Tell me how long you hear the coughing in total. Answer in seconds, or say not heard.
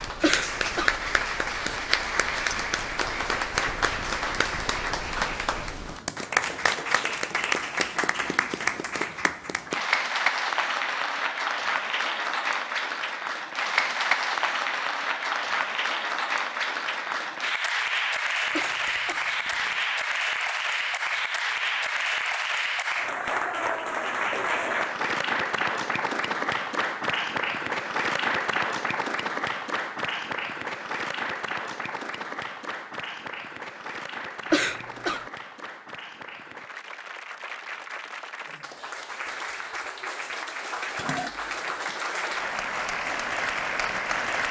2 s.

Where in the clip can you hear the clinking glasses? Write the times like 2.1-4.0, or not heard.
18.6-19.9, 41.0-41.9.